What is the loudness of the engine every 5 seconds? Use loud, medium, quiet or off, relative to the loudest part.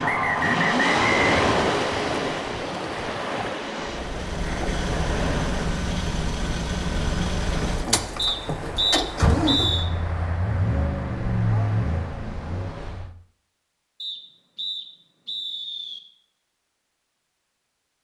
loud, loud, loud, off.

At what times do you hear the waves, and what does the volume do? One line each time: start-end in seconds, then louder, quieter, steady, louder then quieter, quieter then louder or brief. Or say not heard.
0.0-13.2 quieter.